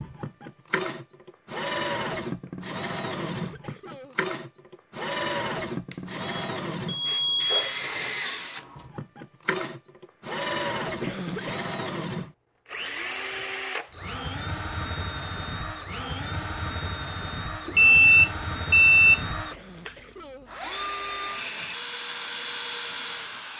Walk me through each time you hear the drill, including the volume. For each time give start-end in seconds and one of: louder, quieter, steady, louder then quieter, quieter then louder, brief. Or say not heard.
0.0-23.5 steady.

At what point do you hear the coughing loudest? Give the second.
11 s.